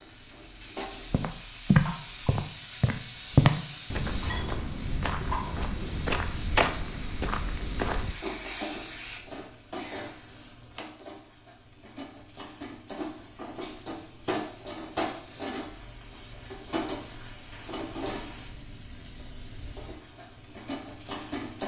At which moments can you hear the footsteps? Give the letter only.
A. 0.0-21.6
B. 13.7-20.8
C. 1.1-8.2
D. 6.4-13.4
C.